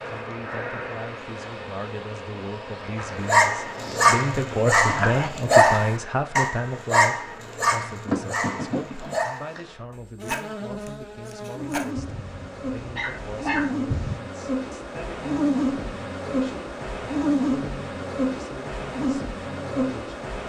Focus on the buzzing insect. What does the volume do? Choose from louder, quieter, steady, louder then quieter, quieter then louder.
louder.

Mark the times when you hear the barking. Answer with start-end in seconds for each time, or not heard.
3.2-14.2.